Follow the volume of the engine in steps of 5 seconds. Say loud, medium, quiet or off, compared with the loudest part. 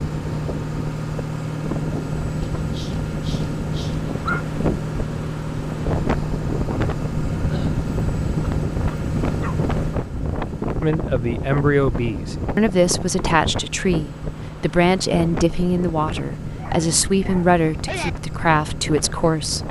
loud, loud, medium, medium.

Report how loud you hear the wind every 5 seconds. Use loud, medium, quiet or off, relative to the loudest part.
loud, loud, loud, medium.